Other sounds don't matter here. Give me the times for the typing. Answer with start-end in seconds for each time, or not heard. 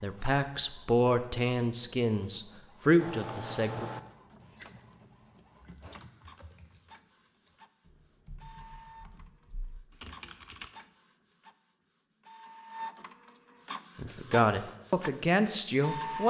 3.0-10.7.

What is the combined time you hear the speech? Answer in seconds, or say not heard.
6 s.